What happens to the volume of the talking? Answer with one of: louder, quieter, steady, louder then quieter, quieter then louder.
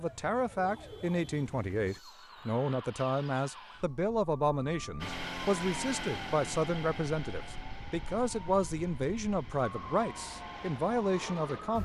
steady.